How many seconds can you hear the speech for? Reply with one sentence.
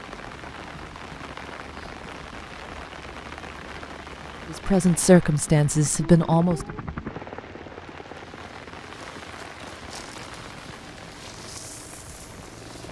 You can hear the speech for 2 seconds altogether.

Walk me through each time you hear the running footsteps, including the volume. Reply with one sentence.
You can't hear the running footsteps here.